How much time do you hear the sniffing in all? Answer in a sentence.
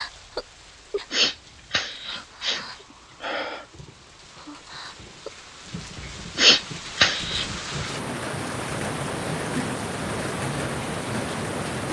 The sniffing can be heard for 4 seconds in total.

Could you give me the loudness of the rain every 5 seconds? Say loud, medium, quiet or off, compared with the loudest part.
quiet, loud, loud.